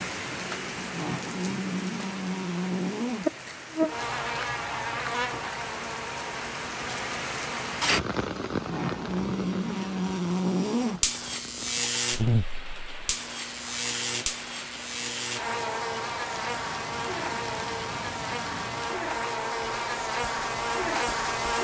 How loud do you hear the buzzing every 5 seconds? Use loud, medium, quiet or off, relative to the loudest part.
loud, medium, loud, loud, loud.